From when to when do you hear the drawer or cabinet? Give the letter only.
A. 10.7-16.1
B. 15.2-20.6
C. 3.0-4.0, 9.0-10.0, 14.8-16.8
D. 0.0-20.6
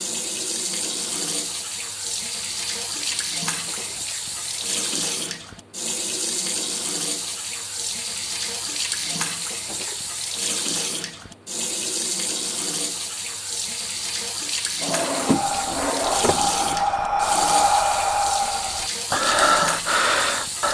C.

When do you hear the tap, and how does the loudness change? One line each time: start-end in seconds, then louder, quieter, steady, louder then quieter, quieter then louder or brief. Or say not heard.
0.0-20.6 steady.